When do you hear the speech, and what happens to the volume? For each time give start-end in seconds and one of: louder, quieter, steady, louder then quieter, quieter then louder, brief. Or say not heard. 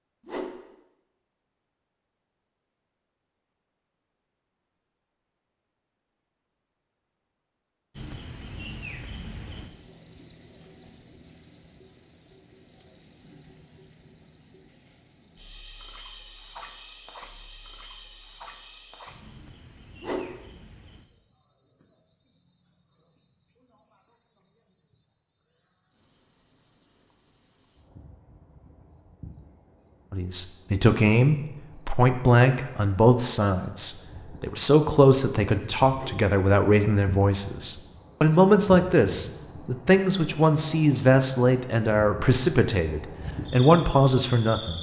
30.1-44.7 steady.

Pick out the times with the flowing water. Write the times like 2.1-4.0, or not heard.
not heard.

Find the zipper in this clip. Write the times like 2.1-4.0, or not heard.
not heard.